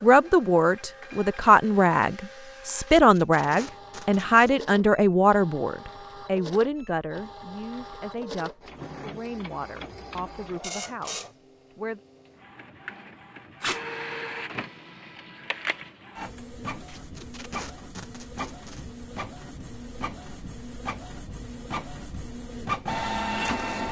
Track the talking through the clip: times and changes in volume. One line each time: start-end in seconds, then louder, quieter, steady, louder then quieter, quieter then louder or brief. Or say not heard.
0.0-12.0 quieter.